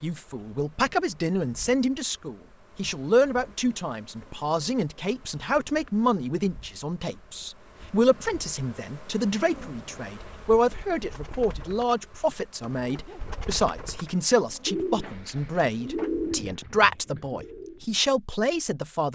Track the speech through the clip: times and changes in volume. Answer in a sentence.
You can hear the speech from 0.0 to 19.1 s, at a steady volume.